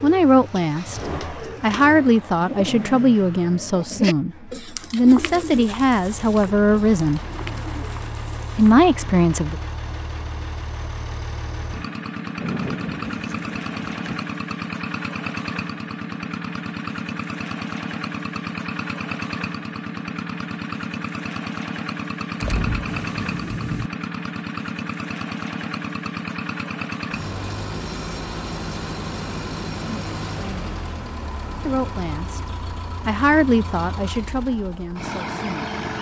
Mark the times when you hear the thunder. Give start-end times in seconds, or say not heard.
12.4-14.2, 22.4-23.9.